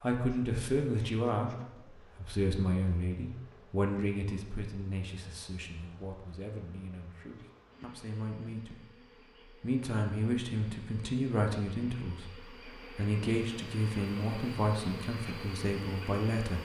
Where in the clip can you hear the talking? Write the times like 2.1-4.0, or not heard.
0.0-1.5, 2.1-8.9, 9.6-16.6.